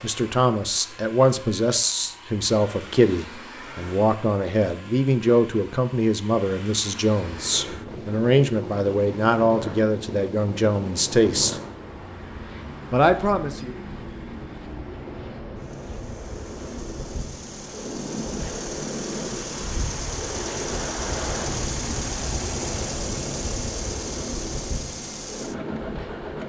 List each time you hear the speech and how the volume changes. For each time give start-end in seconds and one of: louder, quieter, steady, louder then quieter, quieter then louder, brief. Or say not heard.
0.0-11.6 steady
12.9-13.8 brief.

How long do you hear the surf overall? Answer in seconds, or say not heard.
19 s.